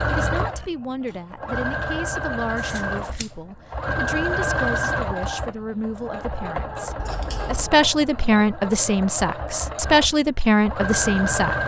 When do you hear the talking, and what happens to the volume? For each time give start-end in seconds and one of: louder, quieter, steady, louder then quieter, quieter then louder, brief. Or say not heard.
0.1-11.6 louder.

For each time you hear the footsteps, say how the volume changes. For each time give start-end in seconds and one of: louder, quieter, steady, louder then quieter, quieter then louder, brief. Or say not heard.
not heard.